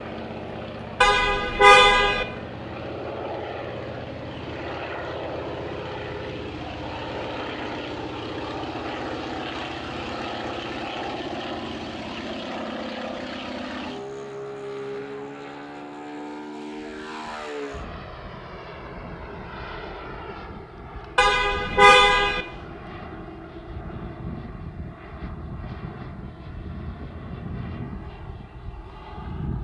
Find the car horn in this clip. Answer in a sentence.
The car horn can be heard from 1.0 to 2.2 s and from 21.1 to 22.4 s.